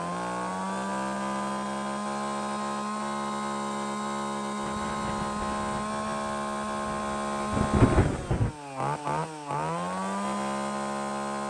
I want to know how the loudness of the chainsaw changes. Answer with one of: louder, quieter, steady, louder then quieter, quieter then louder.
steady.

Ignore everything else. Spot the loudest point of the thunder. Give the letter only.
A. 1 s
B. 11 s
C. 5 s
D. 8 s
D.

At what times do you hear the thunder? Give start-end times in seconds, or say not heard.
4.7-8.6.